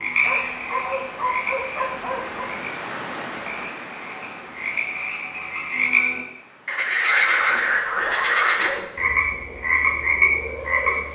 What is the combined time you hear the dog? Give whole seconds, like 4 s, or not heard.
4 s.